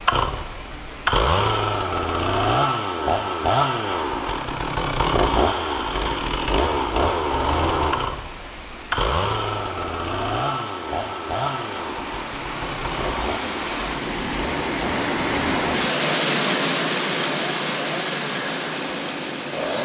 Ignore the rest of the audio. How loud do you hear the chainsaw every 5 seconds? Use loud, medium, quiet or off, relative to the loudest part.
loud, loud, medium, medium.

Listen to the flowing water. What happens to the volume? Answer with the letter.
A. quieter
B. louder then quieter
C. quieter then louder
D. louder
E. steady
D.